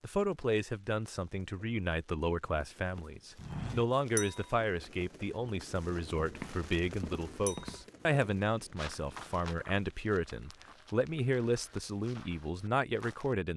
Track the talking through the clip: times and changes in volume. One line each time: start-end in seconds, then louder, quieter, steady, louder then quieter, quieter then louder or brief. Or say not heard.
0.0-13.5 steady.